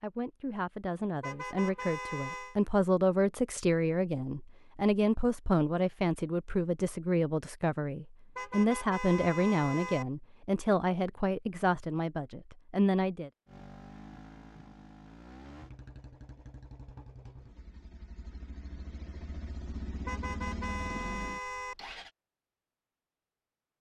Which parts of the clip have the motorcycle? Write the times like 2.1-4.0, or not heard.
13.4-22.1.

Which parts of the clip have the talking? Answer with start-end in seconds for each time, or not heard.
0.0-13.3.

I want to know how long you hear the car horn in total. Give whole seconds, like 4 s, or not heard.
5 s.